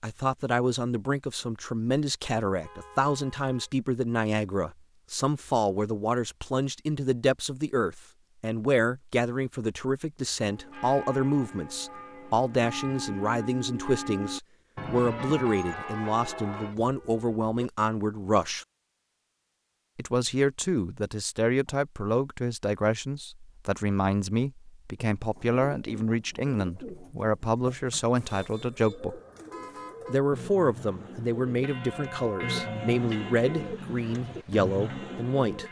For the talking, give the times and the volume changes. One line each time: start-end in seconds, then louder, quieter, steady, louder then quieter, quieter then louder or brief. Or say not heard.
0.0-18.6 steady
19.9-29.2 steady
30.1-35.6 steady.